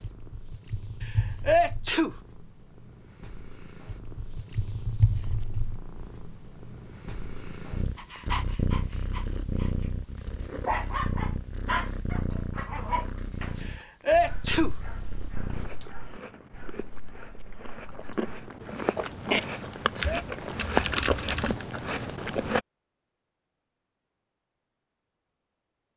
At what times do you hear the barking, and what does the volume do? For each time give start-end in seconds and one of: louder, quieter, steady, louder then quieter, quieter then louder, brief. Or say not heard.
8.0-18.7 louder then quieter.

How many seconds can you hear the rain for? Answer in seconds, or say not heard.
not heard.